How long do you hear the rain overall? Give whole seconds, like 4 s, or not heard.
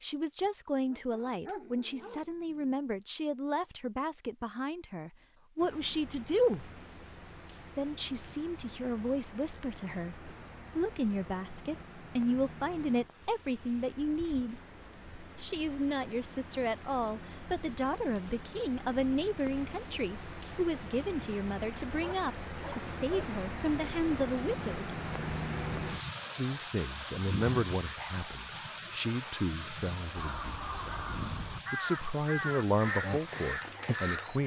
29 s.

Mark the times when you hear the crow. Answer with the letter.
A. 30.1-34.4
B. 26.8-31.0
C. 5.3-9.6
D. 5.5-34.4
A.